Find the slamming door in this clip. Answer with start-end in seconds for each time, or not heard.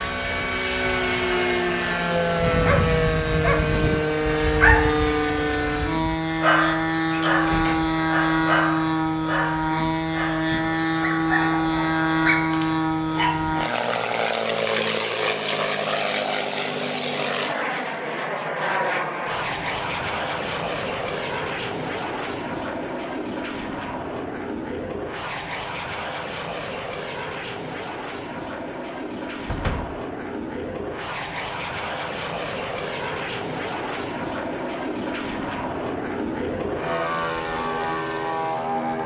7.1-8.1, 29.4-30.0.